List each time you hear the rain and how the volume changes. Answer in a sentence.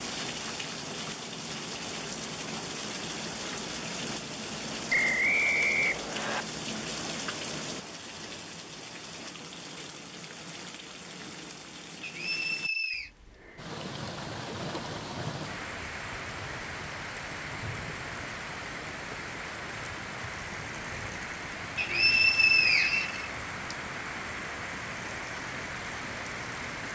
The rain can be heard from 0.0 to 26.8 s, at a steady volume.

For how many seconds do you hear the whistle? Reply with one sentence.
The whistle can be heard for 5 seconds in total.